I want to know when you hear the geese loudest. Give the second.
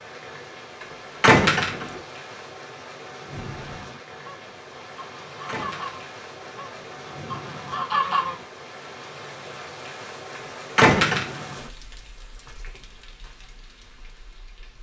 8 s.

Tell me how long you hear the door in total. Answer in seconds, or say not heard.
2 s.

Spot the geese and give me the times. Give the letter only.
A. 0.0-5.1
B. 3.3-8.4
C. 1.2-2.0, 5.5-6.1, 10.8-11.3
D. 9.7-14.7
B.